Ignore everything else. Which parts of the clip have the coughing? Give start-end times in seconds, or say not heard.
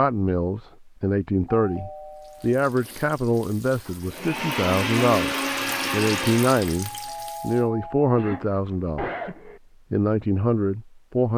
8.0-9.6.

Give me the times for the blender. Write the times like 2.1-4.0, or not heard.
4.0-6.8.